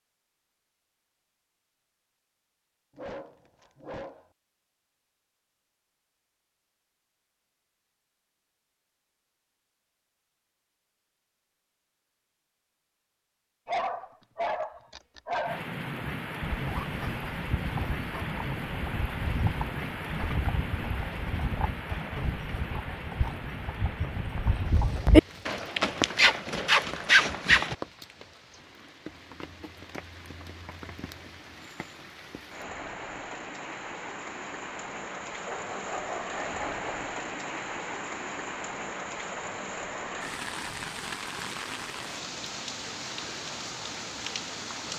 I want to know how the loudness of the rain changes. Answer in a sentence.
The volume of the rain goes down, then up.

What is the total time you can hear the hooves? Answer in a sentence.
The hooves can be heard for 11 seconds in total.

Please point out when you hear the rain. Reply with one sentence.
You can hear the rain from 15.4 to 44.9 s.